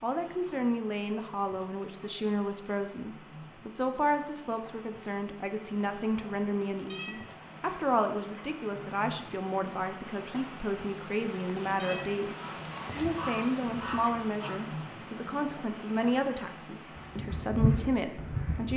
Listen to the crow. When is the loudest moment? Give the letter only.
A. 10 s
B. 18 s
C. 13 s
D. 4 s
B.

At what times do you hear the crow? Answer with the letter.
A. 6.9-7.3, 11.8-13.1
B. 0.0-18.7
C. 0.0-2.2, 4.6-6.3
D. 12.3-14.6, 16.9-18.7
D.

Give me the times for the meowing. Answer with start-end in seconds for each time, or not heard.
6.9-7.3, 11.8-13.1.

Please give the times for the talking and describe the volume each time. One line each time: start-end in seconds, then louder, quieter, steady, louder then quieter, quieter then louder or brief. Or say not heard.
0.0-18.7 steady.